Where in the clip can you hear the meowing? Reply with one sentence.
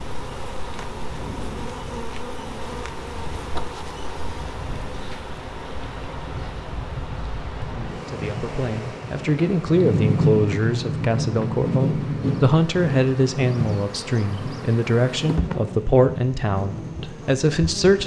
The meowing can't be heard in this clip.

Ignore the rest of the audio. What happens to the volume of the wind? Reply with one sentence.
The volume of the wind goes up, then down.